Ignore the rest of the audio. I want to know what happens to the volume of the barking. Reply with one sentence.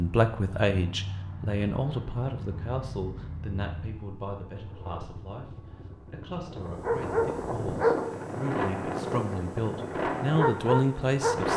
The volume of the barking goes down, then up.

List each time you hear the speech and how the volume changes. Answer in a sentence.
You can hear the speech from 0.0 to 11.5 s, getting quieter then louder.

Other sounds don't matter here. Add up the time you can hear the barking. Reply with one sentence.
The barking can be heard for 5 seconds in total.